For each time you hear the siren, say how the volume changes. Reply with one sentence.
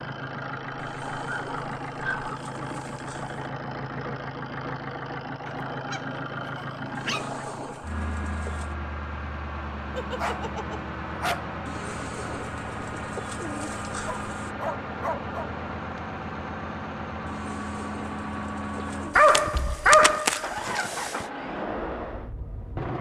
You can't hear the siren here.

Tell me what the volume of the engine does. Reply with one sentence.
The loudness of the engine stays about the same.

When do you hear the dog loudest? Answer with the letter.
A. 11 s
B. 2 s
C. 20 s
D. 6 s
C.